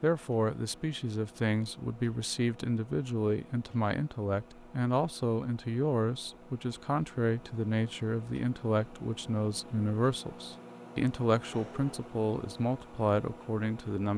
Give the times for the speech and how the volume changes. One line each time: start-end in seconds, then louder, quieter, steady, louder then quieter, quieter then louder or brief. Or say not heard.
0.0-14.1 steady.